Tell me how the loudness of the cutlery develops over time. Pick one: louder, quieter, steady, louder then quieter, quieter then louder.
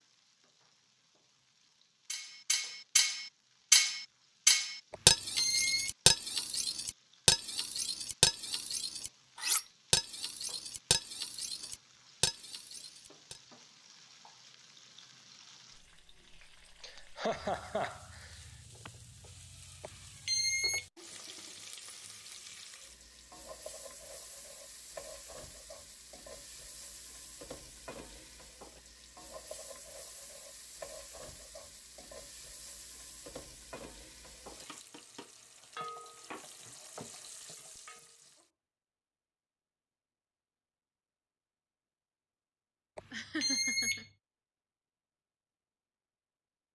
quieter.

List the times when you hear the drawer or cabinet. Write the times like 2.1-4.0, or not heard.
not heard.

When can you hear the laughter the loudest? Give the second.
17 s.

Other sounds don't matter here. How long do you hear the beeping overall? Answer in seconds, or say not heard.
3 s.